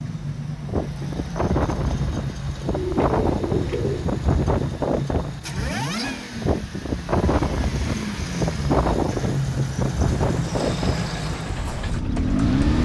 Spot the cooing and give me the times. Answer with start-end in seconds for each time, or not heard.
2.7-4.2.